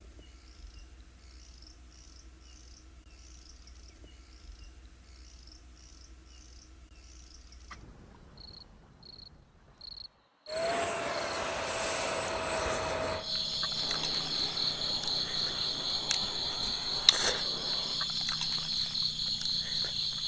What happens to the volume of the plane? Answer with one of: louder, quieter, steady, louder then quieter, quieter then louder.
quieter.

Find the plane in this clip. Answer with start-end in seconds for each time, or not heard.
10.4-18.1.